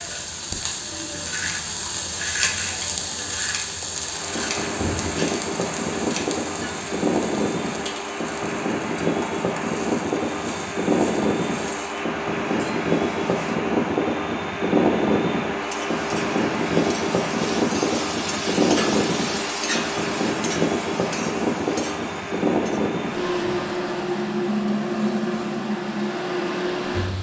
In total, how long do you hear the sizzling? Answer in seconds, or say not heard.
25 s.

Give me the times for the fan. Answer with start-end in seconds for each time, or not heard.
3.9-27.1.